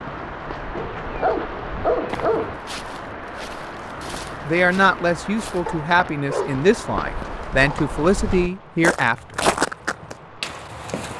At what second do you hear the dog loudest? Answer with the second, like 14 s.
2 s.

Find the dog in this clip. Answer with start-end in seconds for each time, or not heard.
0.8-2.5, 5.7-7.3.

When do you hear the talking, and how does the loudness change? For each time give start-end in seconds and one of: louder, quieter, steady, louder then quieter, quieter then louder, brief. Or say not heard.
4.5-9.2 steady.